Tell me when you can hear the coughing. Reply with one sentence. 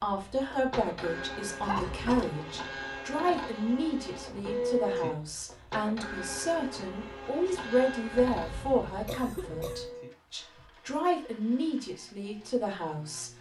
The coughing can be heard from 1.6 to 2.4 s and from 8.1 to 9.9 s.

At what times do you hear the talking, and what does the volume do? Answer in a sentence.
You can hear the talking from 0.0 to 13.3 s, at a steady volume.